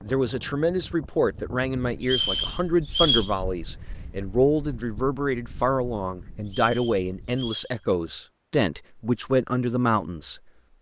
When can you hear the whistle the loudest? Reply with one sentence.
The loudest moment of the whistle is at 3 seconds.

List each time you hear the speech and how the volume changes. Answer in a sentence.
You can hear the speech from 0.0 to 10.4 s, at a steady volume.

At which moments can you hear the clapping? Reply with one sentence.
You can't hear the clapping here.